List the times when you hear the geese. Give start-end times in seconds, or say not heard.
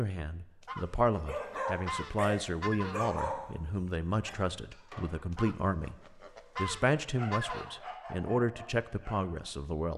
0.6-3.1, 5.3-8.0.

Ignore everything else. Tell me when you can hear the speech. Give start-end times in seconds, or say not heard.
0.0-6.0, 6.5-9.9.